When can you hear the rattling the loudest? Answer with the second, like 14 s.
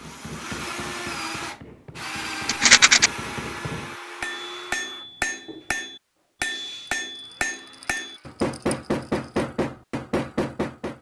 3 s.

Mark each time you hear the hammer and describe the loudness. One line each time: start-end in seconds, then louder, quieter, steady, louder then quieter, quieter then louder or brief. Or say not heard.
0.0-10.9 louder.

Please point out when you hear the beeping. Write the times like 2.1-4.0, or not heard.
not heard.